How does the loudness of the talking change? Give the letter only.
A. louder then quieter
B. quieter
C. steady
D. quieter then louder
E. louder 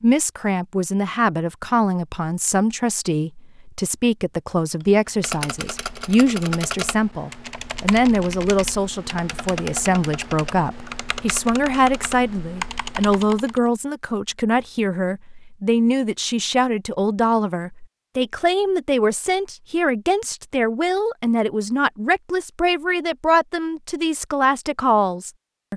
C.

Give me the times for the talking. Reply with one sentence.
You can hear the talking from 0.0 to 25.7 s.